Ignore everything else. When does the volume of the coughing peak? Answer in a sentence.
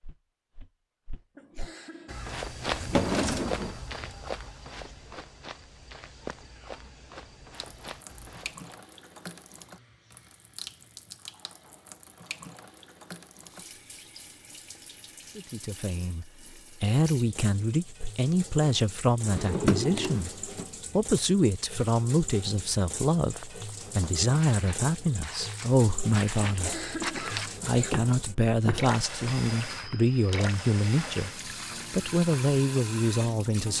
The volume of the coughing peaks at 27 seconds.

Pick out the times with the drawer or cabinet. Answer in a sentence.
You can hear the drawer or cabinet from 2.7 to 3.8 s and from 19.2 to 20.6 s.